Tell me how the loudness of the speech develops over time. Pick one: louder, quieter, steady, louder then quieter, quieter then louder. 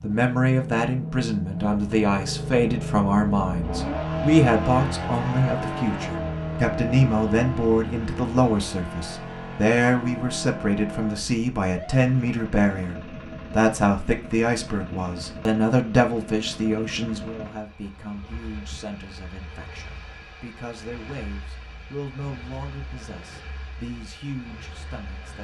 quieter.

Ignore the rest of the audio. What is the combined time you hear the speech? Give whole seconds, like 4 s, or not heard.
25 s.